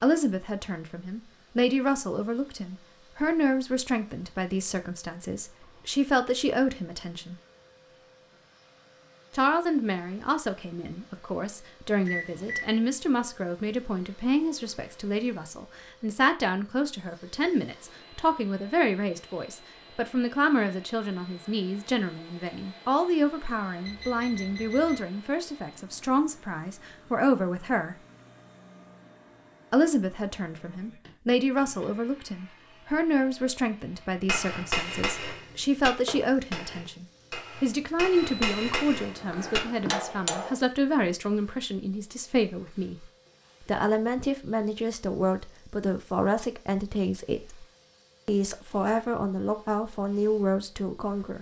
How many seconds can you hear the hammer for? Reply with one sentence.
The hammer can be heard for 6 seconds in total.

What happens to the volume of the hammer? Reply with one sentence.
The volume of the hammer goes down, then up.